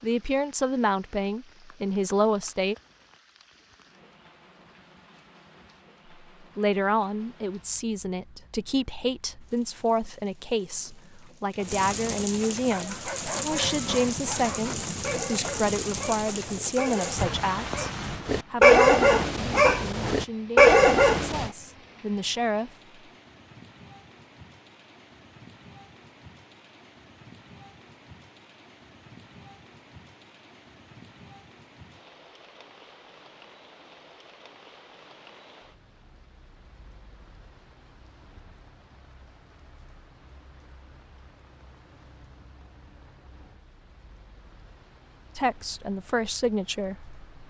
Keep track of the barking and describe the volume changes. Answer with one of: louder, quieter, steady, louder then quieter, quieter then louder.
louder.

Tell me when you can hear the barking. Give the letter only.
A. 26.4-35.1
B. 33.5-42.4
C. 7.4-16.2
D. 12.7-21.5
D.